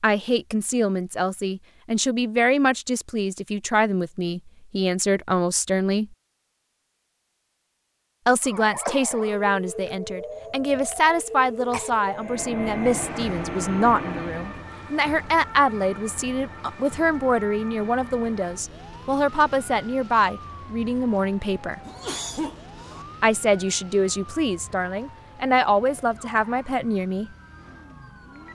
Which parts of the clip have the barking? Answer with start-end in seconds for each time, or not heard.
not heard.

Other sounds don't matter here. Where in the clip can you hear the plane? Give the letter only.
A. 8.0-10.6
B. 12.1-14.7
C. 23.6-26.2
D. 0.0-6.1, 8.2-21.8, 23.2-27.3
B.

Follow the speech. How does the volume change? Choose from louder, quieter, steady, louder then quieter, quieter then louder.
steady.